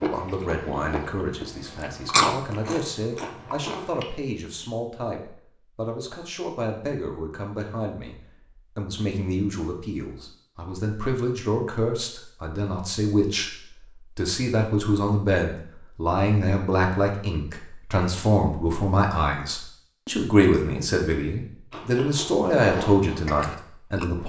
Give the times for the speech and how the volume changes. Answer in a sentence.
The speech can be heard from 0.0 to 24.2 s, getting louder.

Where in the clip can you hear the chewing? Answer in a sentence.
The chewing can be heard from 0.0 to 4.0 s and from 21.7 to 24.1 s.